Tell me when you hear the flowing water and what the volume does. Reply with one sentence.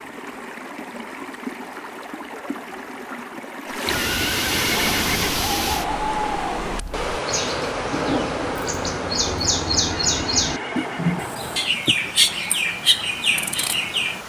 The flowing water can be heard from 0.0 to 14.2 s, getting louder then quieter.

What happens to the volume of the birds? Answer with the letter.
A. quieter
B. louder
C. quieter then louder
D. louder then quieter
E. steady
B.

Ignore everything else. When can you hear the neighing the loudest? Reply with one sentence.
The loudest moment of the neighing is at 5 seconds.